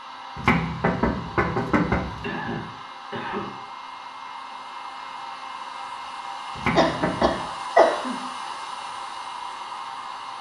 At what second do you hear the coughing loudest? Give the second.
8 s.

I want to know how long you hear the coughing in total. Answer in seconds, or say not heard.
3 s.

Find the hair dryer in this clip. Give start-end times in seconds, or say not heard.
0.0-10.3.